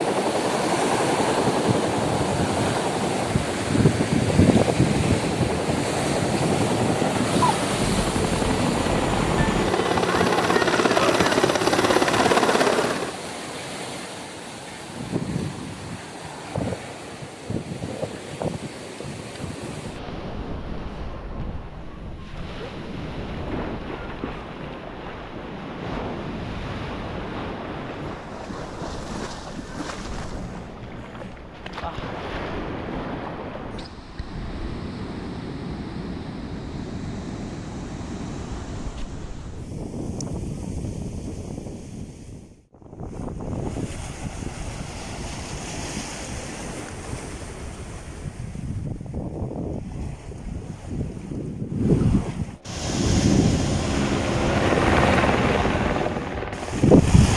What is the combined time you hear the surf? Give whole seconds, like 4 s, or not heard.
57 s.